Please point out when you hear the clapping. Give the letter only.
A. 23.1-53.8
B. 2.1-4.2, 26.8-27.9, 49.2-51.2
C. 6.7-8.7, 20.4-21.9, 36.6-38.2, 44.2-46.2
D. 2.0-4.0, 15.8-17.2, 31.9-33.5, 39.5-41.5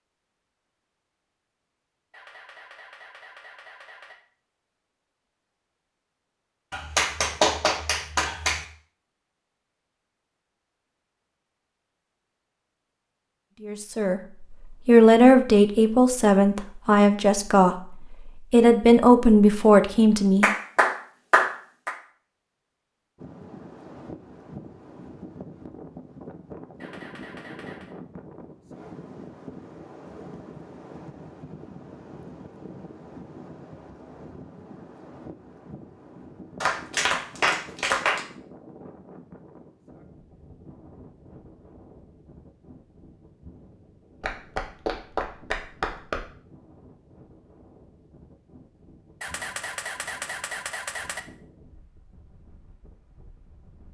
C.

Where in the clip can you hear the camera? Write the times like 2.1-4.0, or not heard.
2.1-4.2, 26.8-27.9, 49.2-51.2.